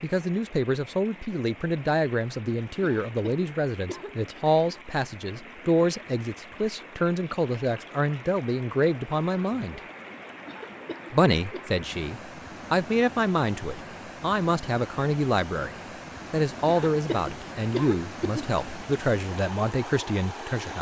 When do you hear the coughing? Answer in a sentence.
You can hear the coughing from 3.0 to 4.2 s, from 10.4 to 11.8 s and from 16.6 to 18.4 s.